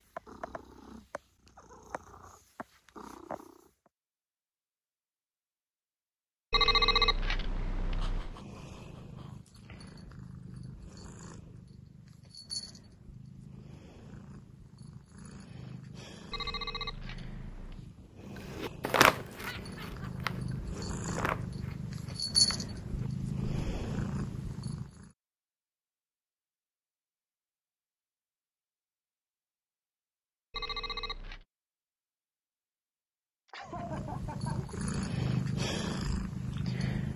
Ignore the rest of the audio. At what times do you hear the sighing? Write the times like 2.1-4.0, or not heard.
not heard.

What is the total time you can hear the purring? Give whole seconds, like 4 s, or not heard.
24 s.